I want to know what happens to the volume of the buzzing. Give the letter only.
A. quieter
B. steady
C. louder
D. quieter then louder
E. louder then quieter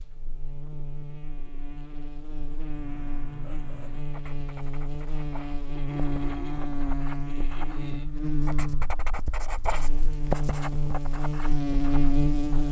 C.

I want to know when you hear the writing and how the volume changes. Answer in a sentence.
You can hear the writing from 2.7 to 12.6 s, getting louder then quieter.